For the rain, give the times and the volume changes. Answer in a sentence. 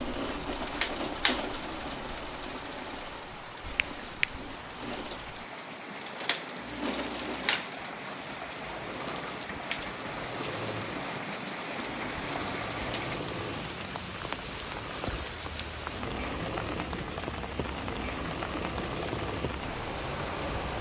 The rain can be heard from 0.0 to 20.7 s, getting louder.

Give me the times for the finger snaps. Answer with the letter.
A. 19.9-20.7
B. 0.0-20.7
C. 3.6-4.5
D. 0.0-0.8
C.